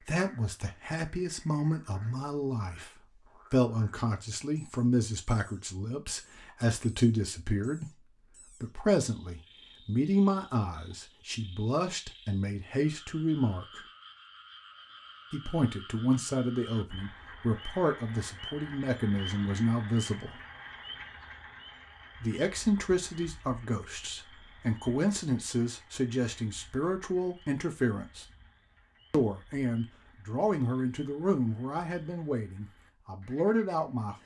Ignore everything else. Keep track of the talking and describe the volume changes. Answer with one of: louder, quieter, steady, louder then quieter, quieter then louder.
steady.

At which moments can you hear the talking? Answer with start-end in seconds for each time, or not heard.
0.0-13.8, 15.3-20.4, 22.2-28.2, 29.1-34.1.